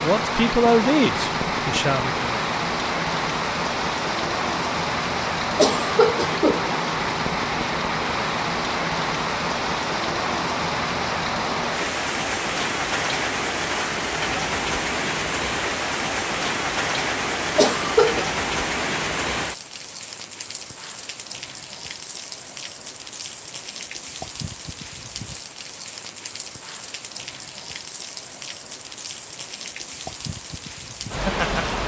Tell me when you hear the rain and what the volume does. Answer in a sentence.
The rain can be heard from 0.0 to 31.8 s, getting quieter.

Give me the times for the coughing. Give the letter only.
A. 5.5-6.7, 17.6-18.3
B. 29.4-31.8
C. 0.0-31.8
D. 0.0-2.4
A.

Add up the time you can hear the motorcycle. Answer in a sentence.
You can't hear the motorcycle here.